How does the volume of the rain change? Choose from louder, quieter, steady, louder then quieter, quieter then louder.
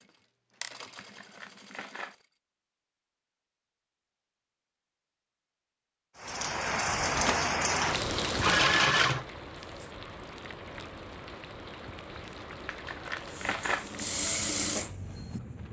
quieter.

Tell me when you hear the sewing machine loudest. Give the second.
9 s.